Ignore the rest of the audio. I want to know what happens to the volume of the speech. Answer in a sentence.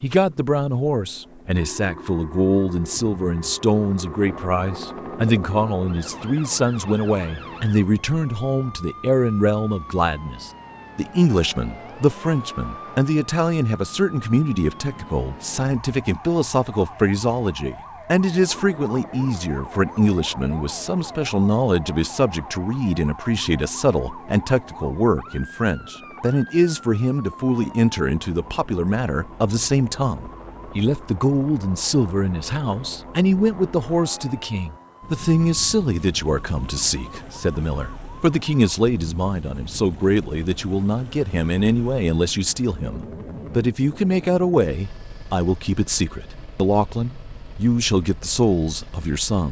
The volume of the speech stays about the same.